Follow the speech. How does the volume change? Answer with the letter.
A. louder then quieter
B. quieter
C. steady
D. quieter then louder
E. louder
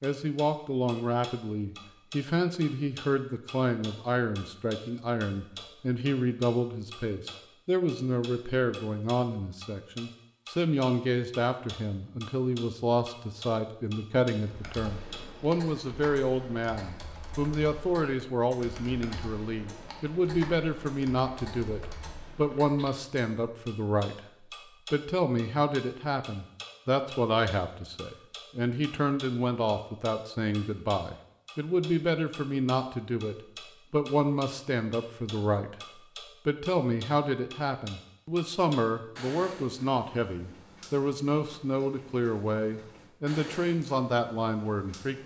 C.